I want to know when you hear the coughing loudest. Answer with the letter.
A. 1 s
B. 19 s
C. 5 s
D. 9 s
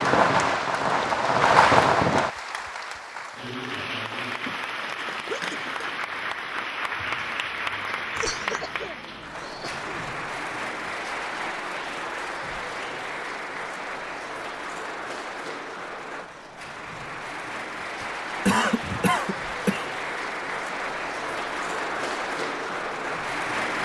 B.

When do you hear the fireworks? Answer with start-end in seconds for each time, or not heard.
0.0-2.3.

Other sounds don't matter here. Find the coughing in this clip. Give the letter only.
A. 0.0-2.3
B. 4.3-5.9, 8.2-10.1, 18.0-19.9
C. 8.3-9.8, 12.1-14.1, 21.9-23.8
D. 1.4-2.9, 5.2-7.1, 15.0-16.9
B.